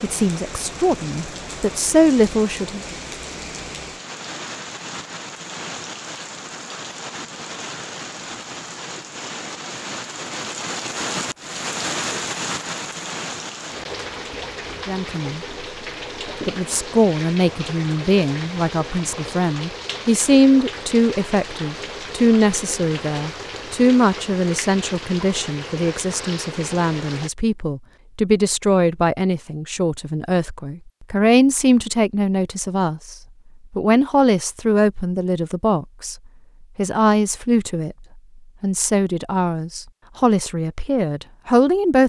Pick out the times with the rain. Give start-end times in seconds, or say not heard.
0.0-27.3.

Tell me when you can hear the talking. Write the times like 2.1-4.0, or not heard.
0.0-3.0, 14.8-15.4, 16.4-33.1, 33.8-36.1, 36.8-38.0, 38.6-42.0.